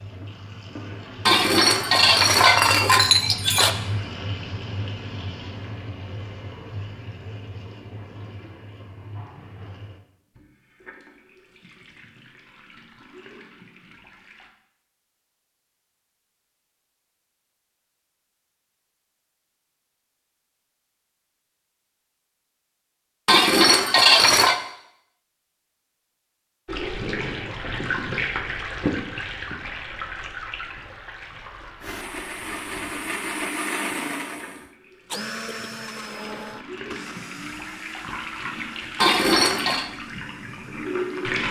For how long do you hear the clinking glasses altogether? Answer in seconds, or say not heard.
5 s.